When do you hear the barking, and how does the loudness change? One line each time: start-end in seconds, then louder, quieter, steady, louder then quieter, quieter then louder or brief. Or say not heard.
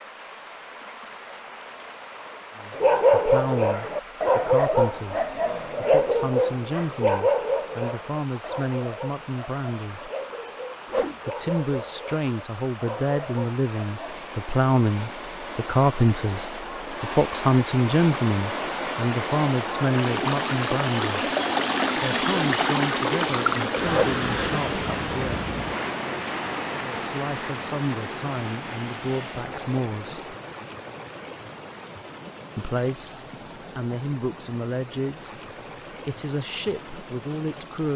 2.7-14.2 quieter.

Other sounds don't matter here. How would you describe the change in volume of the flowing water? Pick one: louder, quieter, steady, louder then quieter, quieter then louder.
louder then quieter.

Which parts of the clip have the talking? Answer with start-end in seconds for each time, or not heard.
2.5-10.1, 11.2-21.3, 21.9-25.4, 26.7-30.4, 32.5-37.9.